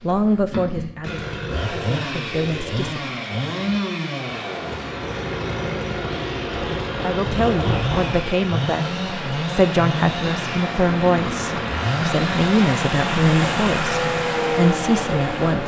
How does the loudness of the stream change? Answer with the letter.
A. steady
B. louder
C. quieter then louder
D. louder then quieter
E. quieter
B.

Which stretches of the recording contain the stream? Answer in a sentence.
You can hear the stream from 4.2 to 15.6 s.